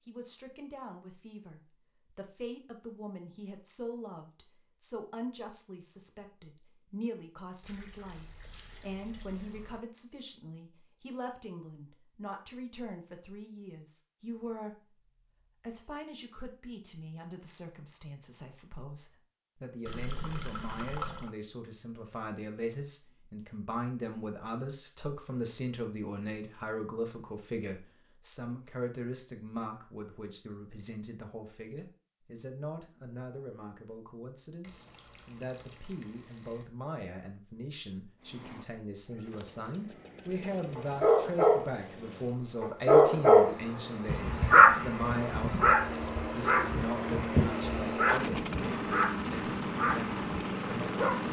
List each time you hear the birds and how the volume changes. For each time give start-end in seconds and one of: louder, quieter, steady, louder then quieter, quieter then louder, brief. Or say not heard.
not heard.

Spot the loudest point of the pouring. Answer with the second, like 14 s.
21 s.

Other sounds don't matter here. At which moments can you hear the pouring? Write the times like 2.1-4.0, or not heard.
7.6-9.8, 19.9-21.3, 34.6-36.6.